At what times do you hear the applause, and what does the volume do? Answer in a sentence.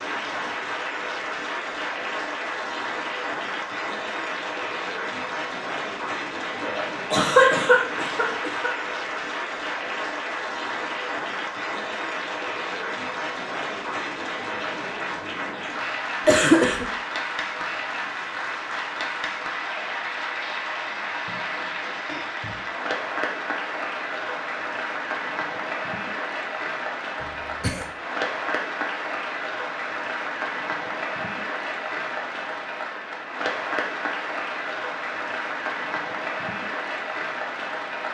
The applause can be heard from 0.0 to 38.0 s, at a steady volume.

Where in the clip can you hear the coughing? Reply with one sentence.
You can hear the coughing from 6.6 to 8.8 s, from 16.2 to 16.9 s and from 27.2 to 27.9 s.